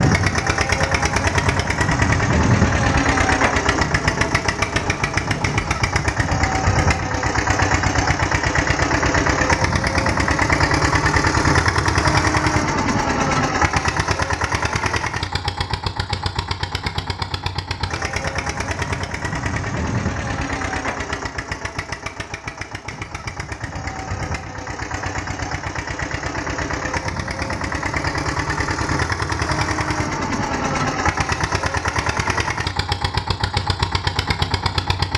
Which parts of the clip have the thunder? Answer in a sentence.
You can hear the thunder from 3.7 to 5.8 s.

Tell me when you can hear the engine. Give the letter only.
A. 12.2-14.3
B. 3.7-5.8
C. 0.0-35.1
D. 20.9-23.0
C.